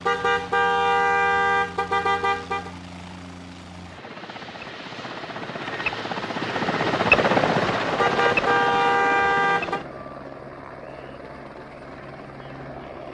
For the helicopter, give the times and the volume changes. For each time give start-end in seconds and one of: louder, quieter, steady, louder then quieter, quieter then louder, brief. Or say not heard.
0.0-13.0 louder then quieter.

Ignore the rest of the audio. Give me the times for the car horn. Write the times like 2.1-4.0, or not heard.
0.1-2.7, 8.0-9.8.